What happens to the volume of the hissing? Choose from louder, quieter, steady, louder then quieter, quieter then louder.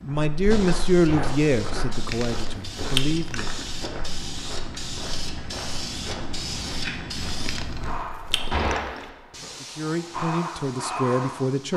louder.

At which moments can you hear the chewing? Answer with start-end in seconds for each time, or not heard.
2.0-3.7, 7.4-9.1.